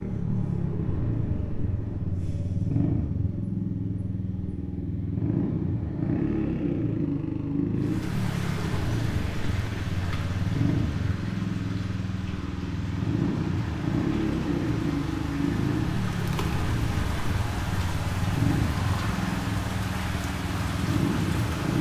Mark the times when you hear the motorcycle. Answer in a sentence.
The motorcycle can be heard from 0.0 to 21.7 s.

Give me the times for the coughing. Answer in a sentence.
You can't hear the coughing here.